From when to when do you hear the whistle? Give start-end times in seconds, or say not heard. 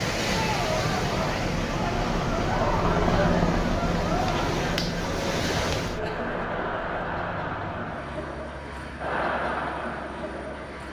not heard.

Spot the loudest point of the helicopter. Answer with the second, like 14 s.
3 s.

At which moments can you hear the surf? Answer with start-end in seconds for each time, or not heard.
0.0-6.2.